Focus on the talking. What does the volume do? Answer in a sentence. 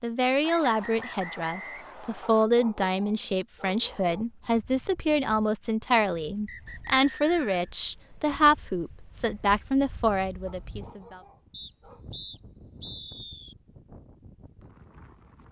The loudness of the talking stays about the same.